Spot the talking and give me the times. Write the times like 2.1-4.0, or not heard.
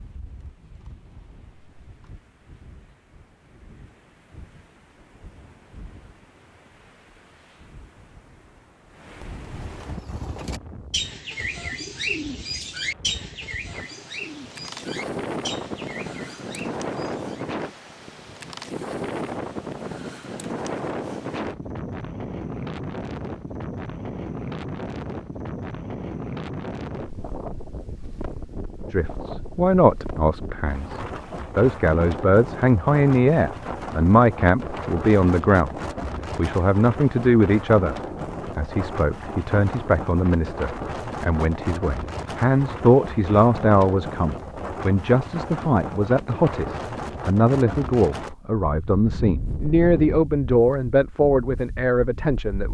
28.9-38.0, 38.5-52.6.